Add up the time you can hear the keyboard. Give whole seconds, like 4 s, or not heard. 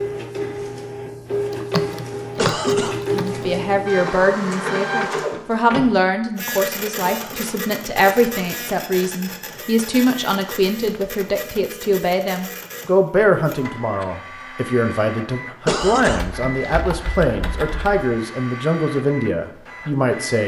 4 s.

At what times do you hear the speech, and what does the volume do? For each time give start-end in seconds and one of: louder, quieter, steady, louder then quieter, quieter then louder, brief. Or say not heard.
3.1-20.4 steady.